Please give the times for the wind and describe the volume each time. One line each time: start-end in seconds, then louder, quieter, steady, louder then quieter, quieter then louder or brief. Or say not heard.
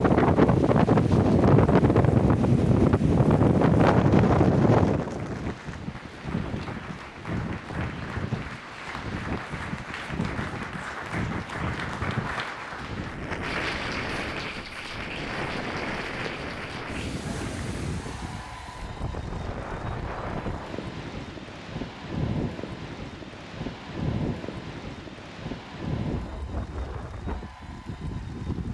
0.0-28.6 quieter.